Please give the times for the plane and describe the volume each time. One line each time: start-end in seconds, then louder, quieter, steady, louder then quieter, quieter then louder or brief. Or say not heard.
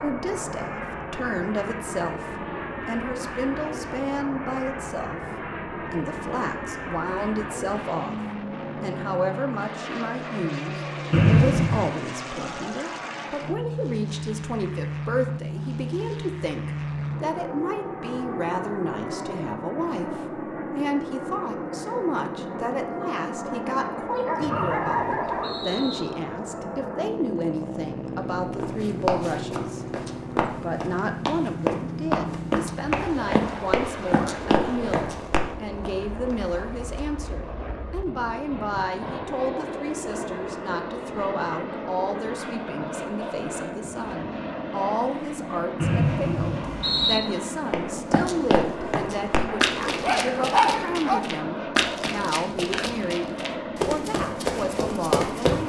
0.0-55.6 steady.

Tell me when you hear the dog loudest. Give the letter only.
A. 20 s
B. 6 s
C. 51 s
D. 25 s
C.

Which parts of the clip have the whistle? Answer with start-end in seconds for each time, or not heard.
11.1-11.8, 24.4-26.0, 45.8-47.2.